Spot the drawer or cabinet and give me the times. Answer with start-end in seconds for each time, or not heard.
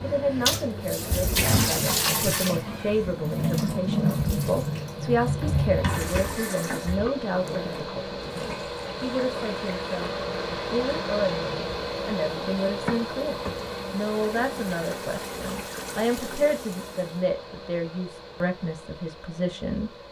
5.3-7.1.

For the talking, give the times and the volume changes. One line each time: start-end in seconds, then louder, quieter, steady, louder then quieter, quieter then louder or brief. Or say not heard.
0.0-19.9 steady.